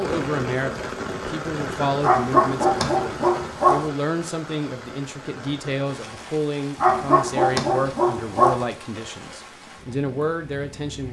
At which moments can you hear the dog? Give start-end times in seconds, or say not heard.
2.0-3.9, 6.8-8.7.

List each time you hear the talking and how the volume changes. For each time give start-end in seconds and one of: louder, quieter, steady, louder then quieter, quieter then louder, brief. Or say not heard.
0.0-11.0 steady.